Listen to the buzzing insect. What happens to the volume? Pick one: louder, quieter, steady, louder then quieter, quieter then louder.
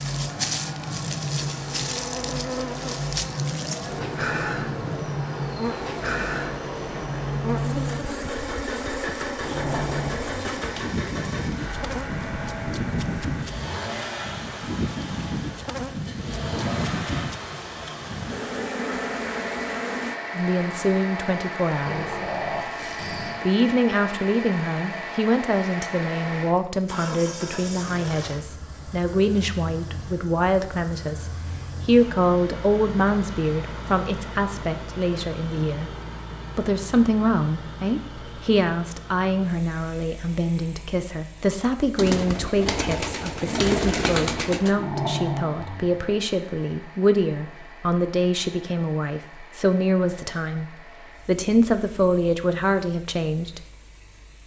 steady.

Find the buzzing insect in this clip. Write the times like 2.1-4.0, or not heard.
0.0-20.2.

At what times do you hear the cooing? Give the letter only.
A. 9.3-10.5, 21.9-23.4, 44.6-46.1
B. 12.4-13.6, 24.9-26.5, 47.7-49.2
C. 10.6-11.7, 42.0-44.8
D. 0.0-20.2
C.